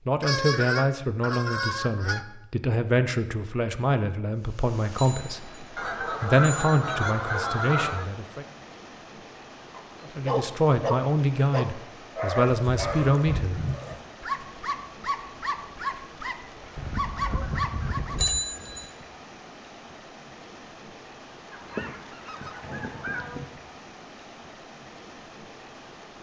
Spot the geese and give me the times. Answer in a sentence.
The geese can be heard from 0.2 to 2.2 s, from 5.8 to 8.1 s, from 12.7 to 14.0 s, from 16.8 to 18.4 s and from 21.5 to 23.4 s.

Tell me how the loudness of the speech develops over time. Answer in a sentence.
The volume of the speech stays about the same.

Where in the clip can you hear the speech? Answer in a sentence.
The speech can be heard from 0.1 to 8.4 s and from 10.0 to 13.7 s.